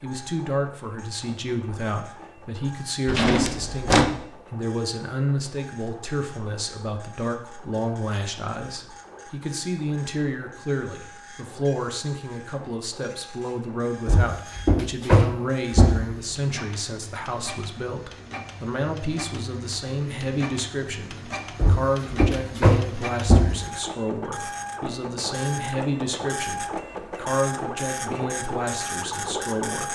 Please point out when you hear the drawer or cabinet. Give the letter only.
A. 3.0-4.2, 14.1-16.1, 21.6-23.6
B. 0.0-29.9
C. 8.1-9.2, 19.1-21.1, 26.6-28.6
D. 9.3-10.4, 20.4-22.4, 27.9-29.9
A.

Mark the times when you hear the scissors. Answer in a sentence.
You can't hear the scissors here.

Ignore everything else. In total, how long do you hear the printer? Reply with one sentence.
You can hear the printer for 30 seconds altogether.